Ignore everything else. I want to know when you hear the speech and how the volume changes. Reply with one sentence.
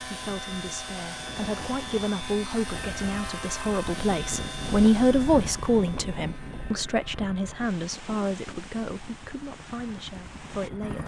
The speech can be heard from 0.1 to 11.0 s, getting louder then quieter.